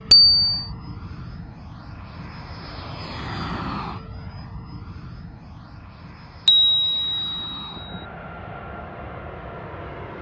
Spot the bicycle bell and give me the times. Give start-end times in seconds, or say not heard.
0.1-0.7, 6.5-8.0.